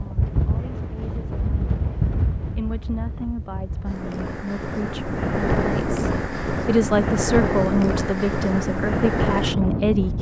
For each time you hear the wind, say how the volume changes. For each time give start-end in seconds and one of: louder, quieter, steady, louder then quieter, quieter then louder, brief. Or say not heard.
0.0-10.1 quieter then louder.